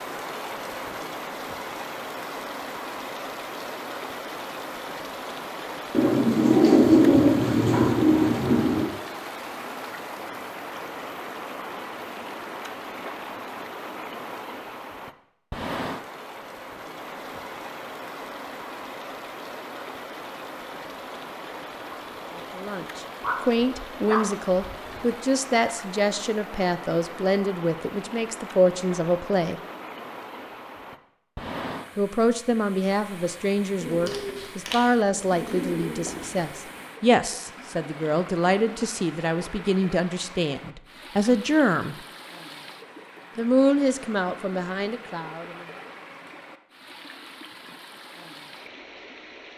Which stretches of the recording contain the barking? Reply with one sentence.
The barking can be heard from 23.2 to 25.1 s.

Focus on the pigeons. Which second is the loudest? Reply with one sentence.
The volume of the pigeons peaks at 7 seconds.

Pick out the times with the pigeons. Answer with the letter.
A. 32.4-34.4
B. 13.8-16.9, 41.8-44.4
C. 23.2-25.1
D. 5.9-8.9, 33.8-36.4
D.